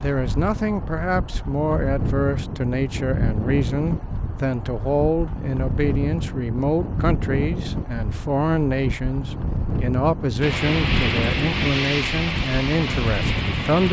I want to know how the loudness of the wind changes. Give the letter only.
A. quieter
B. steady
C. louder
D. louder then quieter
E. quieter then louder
B.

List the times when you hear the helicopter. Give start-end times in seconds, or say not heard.
10.4-13.8.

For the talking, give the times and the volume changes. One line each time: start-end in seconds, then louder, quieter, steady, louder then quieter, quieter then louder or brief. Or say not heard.
0.0-13.8 steady.